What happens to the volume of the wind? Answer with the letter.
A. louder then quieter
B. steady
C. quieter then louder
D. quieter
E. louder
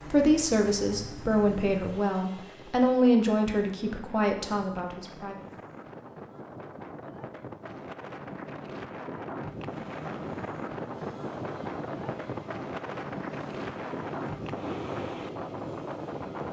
E.